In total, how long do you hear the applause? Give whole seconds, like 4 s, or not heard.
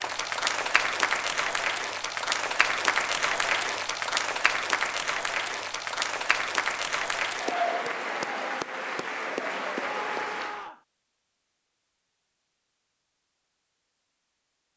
11 s.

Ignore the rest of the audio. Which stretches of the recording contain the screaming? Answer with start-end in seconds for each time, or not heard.
9.9-10.8.